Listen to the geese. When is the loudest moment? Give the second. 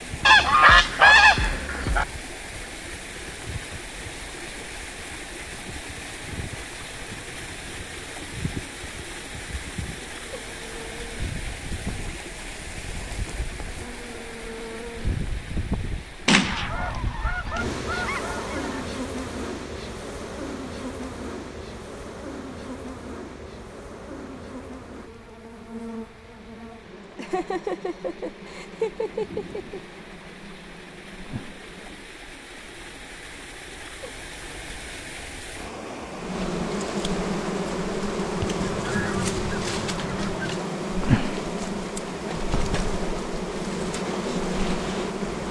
1 s.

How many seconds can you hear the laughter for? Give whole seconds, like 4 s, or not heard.
3 s.